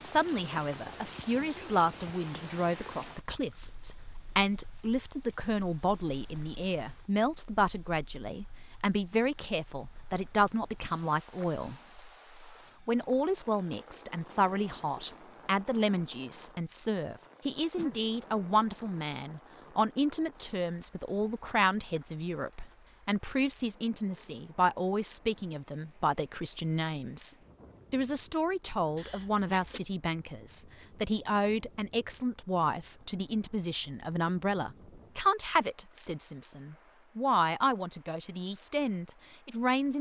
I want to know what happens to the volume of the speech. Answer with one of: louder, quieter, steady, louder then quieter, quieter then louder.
steady.